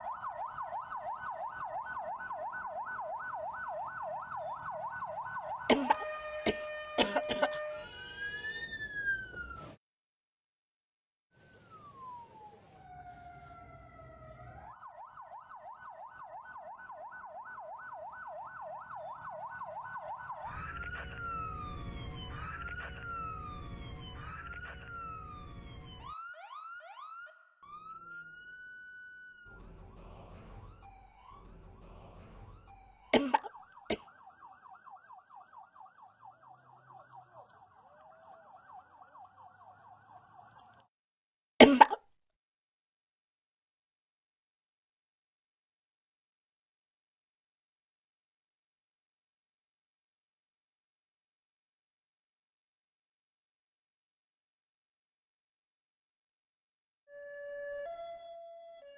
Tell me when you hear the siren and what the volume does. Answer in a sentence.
You can hear the siren from 0.0 to 9.8 s, at a steady volume; from 11.3 to 40.9 s, getting louder then quieter; and briefly from 57.0 to 58.9 s.